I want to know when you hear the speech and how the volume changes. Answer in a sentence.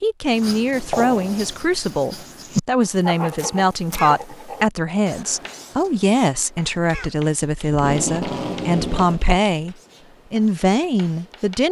The speech can be heard from 0.0 to 11.6 s, at a steady volume.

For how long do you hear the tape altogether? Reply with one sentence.
The tape can be heard for 2 seconds in total.